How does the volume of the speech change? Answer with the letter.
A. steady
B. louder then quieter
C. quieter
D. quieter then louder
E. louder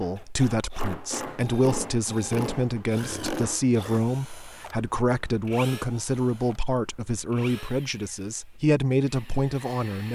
A.